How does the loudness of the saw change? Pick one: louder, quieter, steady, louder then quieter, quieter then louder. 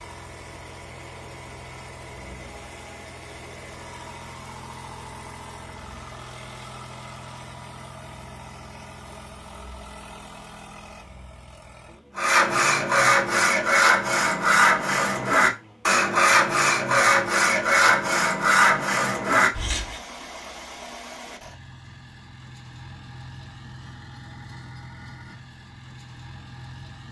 steady.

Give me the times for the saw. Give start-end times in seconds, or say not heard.
12.2-20.0.